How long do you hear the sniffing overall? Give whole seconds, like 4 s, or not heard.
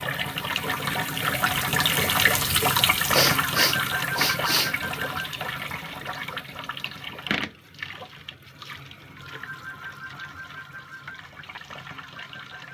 2 s.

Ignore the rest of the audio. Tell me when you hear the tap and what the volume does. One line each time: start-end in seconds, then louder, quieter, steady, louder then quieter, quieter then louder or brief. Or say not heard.
0.0-12.6 quieter.